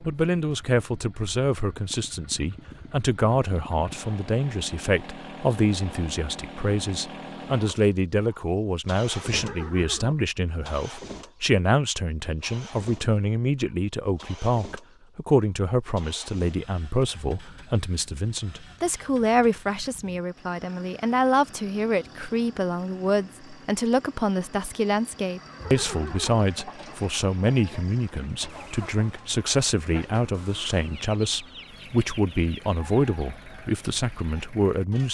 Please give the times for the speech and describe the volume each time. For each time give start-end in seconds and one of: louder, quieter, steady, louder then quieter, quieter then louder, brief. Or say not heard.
0.0-35.0 steady.